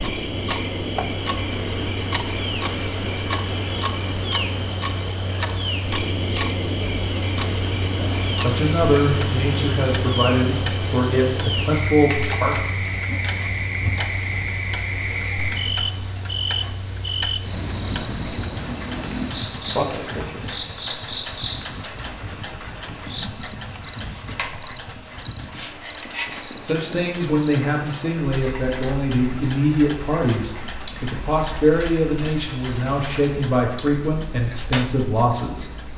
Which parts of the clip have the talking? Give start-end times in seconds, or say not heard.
8.2-12.6, 26.6-35.7.